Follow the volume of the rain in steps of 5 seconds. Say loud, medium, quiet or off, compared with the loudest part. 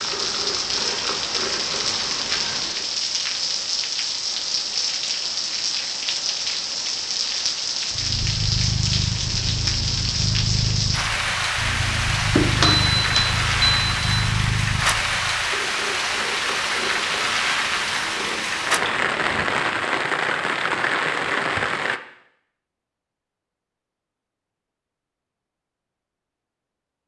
loud, loud, loud, loud, loud, off.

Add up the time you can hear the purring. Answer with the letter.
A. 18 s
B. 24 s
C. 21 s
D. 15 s
D.